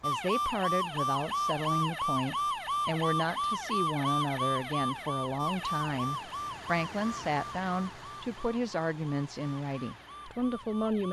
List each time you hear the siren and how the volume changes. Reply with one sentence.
You can hear the siren from 0.0 to 11.0 s, getting quieter.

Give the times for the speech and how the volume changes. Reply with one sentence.
You can hear the speech from 0.0 to 11.0 s, at a steady volume.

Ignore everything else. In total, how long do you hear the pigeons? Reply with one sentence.
You can't hear the pigeons here.